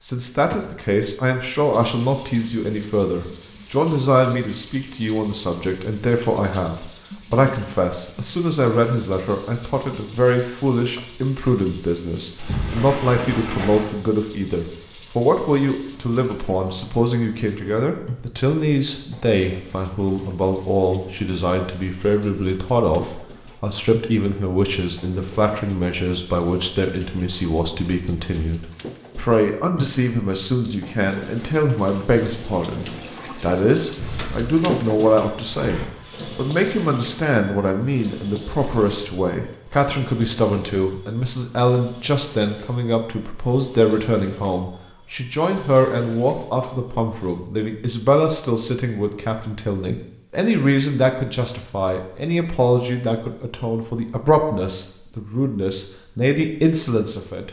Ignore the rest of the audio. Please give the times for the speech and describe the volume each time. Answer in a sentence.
The speech can be heard from 0.0 to 57.4 s, at a steady volume.